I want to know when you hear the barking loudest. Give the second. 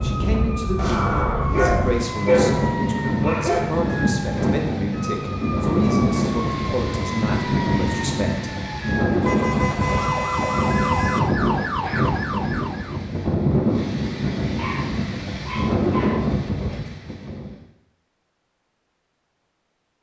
2 s.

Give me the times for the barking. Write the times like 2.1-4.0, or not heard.
0.8-3.8, 14.6-16.3.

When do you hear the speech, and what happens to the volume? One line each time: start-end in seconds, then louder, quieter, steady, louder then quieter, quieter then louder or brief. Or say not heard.
0.0-8.5 steady.